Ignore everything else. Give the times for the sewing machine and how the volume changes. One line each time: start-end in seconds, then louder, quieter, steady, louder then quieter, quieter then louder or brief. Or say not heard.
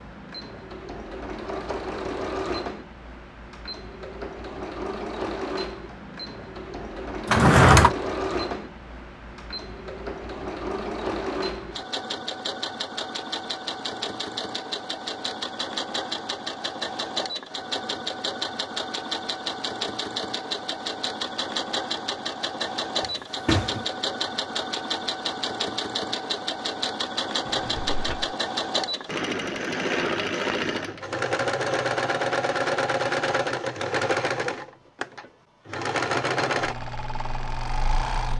0.0-38.3 louder.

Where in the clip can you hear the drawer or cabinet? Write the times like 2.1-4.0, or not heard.
7.2-7.9, 23.4-23.9, 27.4-28.4.